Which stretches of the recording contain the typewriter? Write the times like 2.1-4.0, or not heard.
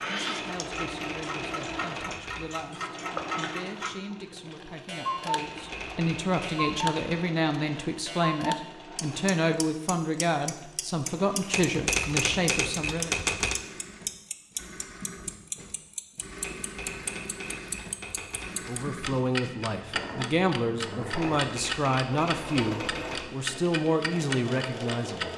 0.5-2.6, 5.3-7.2, 11.5-13.6, 16.4-18.7, 21.2-23.3.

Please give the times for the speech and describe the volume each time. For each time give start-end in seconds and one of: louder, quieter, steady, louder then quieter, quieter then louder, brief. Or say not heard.
0.1-13.2 louder
18.6-25.3 steady.